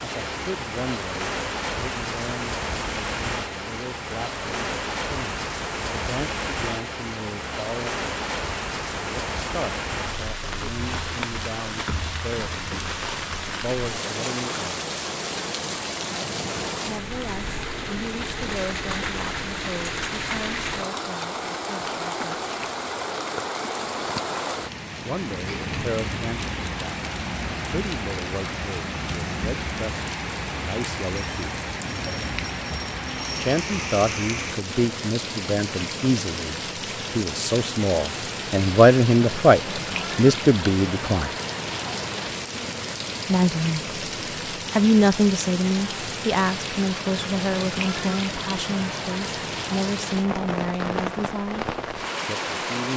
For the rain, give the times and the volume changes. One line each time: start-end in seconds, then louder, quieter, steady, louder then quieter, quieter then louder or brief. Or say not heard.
0.0-52.9 steady.